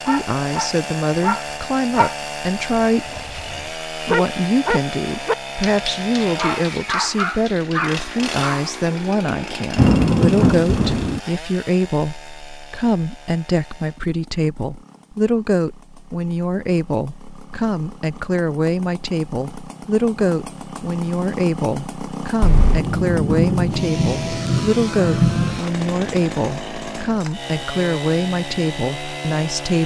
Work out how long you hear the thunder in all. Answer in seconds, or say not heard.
5 s.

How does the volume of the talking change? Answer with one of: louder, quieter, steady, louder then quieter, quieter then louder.
steady.